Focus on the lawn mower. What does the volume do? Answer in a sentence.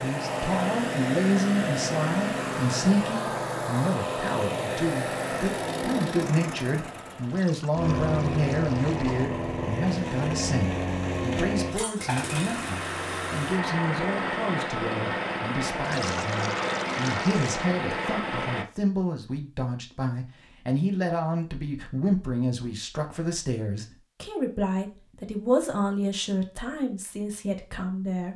The loudness of the lawn mower stays about the same.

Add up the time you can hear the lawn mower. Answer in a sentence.
The lawn mower can be heard for 19 seconds in total.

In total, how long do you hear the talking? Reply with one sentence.
The talking can be heard for 28 seconds in total.